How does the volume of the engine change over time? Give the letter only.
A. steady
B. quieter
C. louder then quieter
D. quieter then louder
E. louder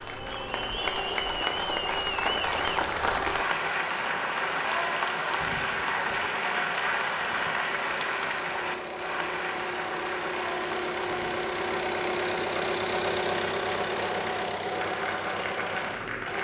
E.